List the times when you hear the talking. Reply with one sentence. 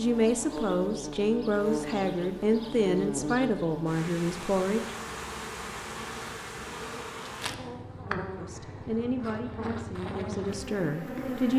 You can hear the talking from 0.0 to 4.9 s and from 8.3 to 11.5 s.